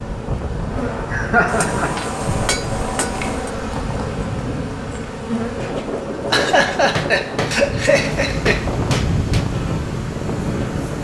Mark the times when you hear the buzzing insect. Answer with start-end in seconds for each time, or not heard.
0.0-10.9.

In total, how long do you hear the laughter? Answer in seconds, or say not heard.
3 s.